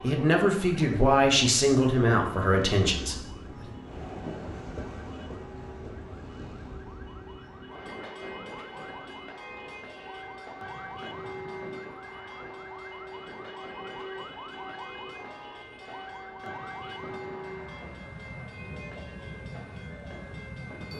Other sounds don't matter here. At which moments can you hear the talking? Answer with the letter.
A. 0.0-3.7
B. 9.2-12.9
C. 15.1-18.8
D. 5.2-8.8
A.